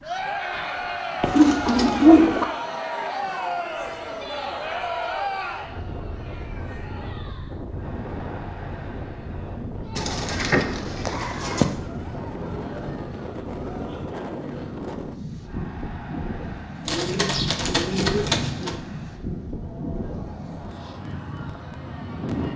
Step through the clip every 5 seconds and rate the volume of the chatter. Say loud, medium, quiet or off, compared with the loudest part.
loud, medium, quiet, quiet, quiet.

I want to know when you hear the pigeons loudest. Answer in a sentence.
The loudest moment of the pigeons is at 2 seconds.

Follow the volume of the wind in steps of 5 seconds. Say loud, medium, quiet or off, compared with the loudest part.
quiet, loud, loud, loud, loud.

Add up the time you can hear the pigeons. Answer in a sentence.
You can hear the pigeons for 5 seconds altogether.